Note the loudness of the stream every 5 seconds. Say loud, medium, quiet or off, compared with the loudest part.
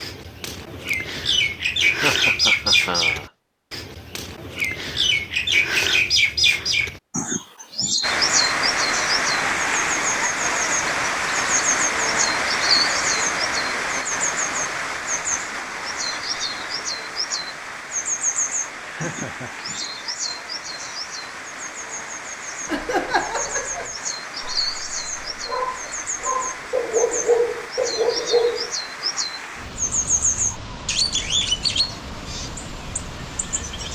off, loud, loud, medium, quiet, quiet, quiet.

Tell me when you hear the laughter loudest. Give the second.
23 s.